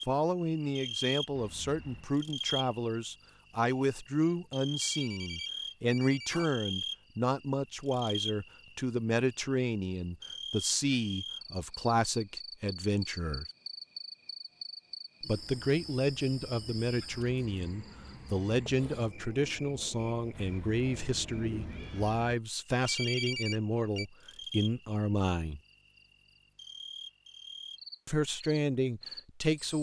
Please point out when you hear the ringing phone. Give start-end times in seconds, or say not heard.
4.8-6.5, 22.9-24.1.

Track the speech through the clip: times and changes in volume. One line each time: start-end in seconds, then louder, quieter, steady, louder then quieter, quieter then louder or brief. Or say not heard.
0.1-13.4 steady
15.2-25.6 steady
28.1-29.7 brief.